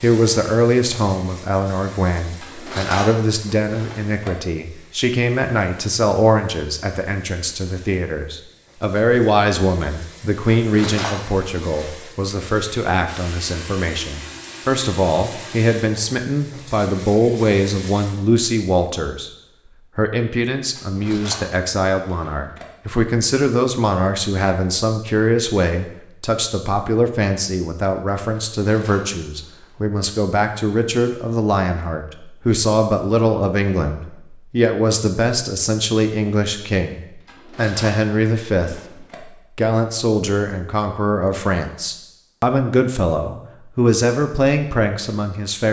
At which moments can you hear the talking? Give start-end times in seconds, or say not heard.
0.0-19.3, 19.9-45.6.